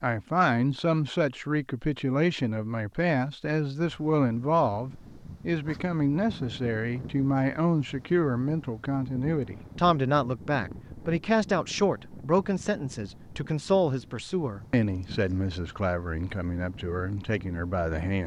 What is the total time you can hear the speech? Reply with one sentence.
The speech can be heard for 18 seconds in total.